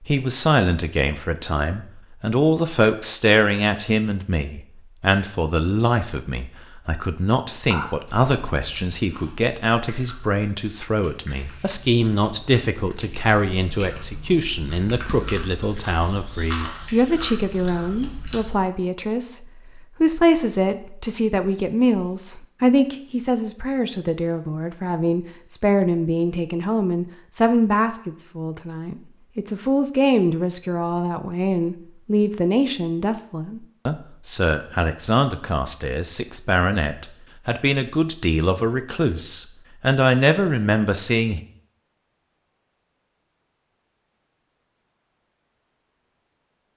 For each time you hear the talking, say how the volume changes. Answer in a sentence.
You can hear the talking from 0.1 to 41.4 s, at a steady volume.